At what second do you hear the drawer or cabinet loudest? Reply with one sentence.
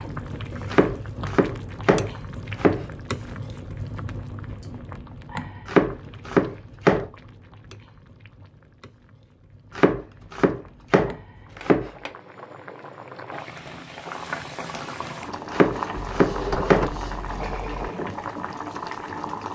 The volume of the drawer or cabinet peaks at 17 seconds.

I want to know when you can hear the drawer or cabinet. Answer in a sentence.
The drawer or cabinet can be heard from 15.9 to 17.9 s.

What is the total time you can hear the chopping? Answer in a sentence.
You can hear the chopping for 7 seconds altogether.